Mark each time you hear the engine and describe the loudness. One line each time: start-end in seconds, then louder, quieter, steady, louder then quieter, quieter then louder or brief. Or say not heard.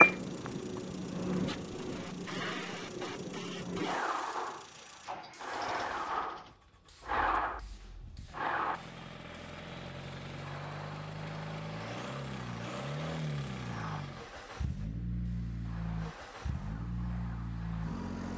0.0-18.3 louder.